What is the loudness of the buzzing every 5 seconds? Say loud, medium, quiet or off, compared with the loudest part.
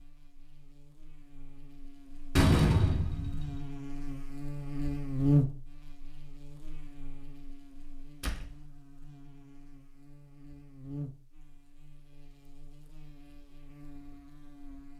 medium, loud, quiet.